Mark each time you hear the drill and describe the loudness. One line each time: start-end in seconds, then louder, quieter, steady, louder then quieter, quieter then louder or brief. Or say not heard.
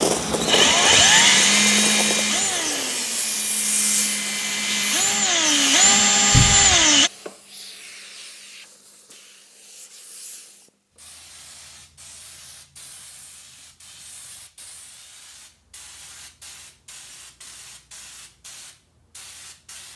0.0-7.1 quieter then louder.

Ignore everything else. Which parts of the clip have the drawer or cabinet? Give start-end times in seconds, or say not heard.
6.3-6.8.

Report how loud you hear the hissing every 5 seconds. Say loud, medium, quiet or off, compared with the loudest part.
loud, quiet, quiet, quiet.